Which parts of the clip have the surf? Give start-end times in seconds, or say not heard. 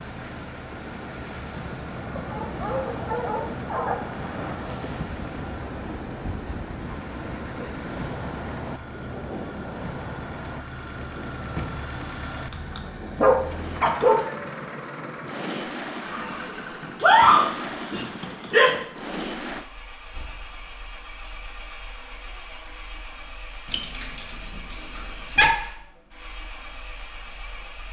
0.0-19.6.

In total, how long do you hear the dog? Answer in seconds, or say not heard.
11 s.